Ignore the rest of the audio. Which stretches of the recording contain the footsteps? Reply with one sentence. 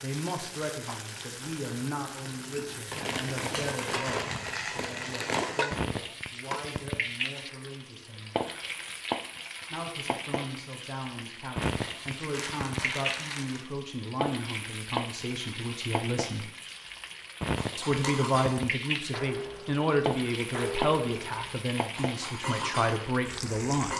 You can't hear the footsteps here.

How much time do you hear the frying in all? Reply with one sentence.
You can hear the frying for 24 seconds altogether.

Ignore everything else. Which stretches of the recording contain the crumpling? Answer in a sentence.
You can hear the crumpling from 2.9 to 5.6 s, from 11.7 to 13.7 s and from 18.0 to 18.7 s.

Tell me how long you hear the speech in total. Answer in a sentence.
The speech can be heard for 21 seconds in total.